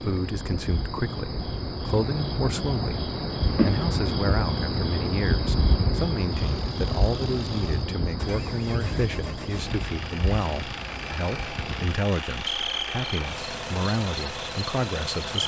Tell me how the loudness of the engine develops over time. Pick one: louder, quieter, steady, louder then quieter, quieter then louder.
louder.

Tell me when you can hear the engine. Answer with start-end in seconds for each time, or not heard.
6.3-15.4.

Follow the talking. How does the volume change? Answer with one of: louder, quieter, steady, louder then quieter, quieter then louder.
steady.